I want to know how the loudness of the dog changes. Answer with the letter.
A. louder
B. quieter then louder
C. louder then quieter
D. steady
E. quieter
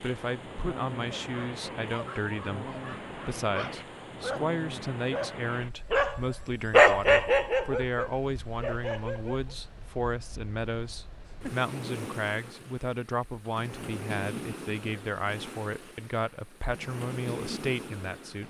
C.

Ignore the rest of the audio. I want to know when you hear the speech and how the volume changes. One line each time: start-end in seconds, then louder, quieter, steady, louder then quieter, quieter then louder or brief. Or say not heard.
0.0-18.4 steady.